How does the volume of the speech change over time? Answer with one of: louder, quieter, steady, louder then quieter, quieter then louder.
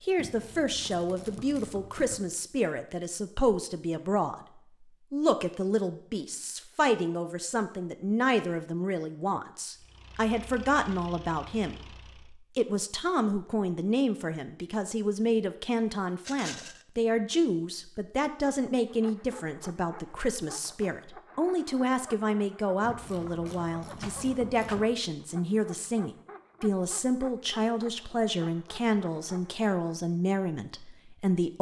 steady.